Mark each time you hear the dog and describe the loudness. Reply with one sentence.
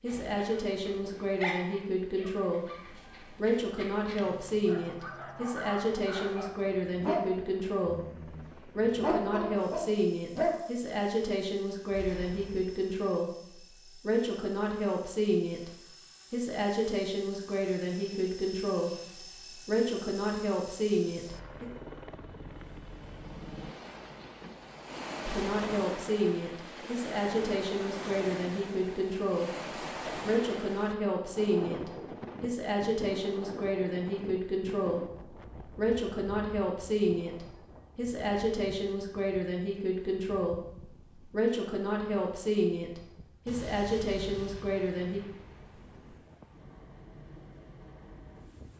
The dog can be heard from 0.1 to 10.6 s, getting quieter then louder.